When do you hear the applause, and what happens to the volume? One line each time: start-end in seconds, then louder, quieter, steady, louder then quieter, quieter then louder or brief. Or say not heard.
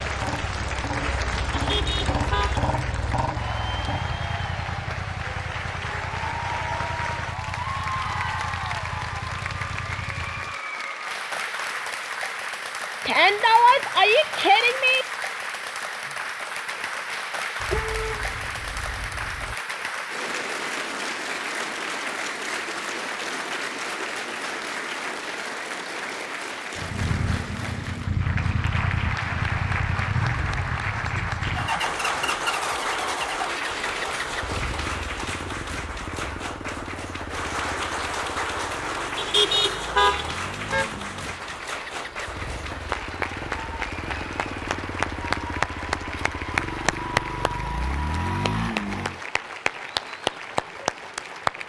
0.0-51.6 steady.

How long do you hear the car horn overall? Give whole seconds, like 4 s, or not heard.
5 s.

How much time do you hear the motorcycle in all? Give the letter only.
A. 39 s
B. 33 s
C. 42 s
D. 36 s
B.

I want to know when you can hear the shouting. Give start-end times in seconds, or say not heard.
13.1-15.1.